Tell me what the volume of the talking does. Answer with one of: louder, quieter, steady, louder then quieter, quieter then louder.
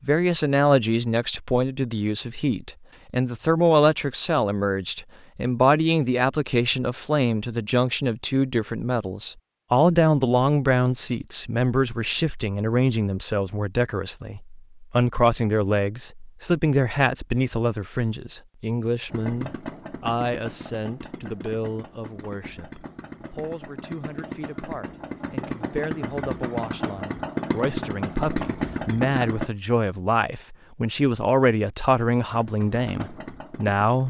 quieter then louder.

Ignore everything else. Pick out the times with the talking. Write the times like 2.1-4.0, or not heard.
0.1-34.0.